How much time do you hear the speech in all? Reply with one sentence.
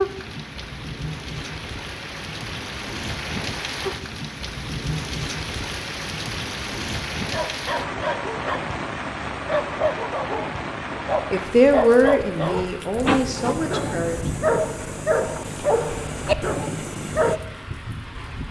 You can hear the speech for 3 seconds altogether.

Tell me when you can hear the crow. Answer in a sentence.
The crow can't be heard in this clip.